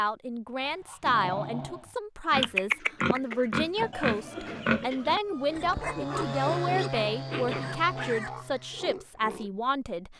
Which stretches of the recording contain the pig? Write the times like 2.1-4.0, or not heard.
2.3-9.5.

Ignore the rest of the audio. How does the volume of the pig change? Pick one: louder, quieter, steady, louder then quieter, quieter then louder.
quieter.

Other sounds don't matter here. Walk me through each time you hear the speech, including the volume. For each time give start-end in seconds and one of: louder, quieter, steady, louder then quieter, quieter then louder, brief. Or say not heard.
0.0-10.1 steady.